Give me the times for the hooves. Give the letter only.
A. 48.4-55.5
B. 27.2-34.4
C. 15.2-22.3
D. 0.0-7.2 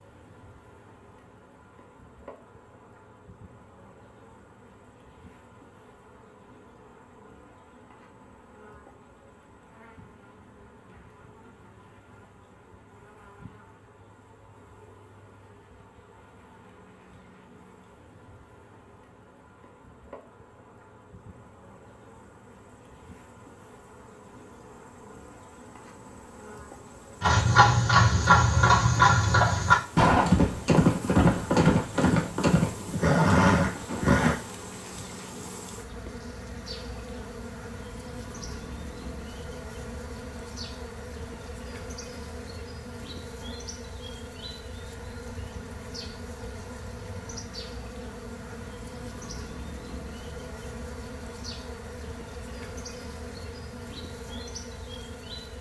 B.